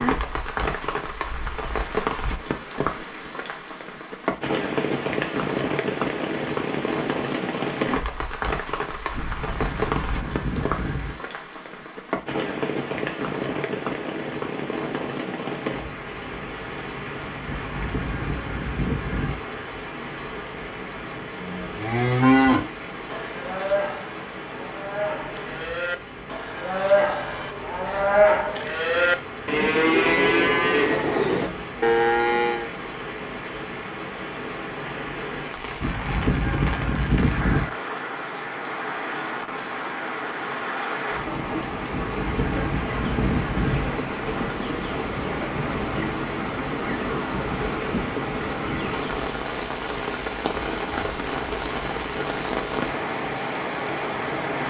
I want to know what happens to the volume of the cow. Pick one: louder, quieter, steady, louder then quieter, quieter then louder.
quieter then louder.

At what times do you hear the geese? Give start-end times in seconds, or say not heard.
9.1-11.2, 17.4-19.4, 35.8-37.6, 41.9-43.9.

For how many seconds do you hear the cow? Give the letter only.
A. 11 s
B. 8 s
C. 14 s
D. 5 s
A.